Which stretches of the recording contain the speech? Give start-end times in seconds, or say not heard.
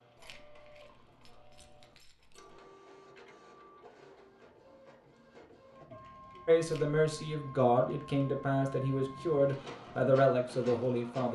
6.5-11.2.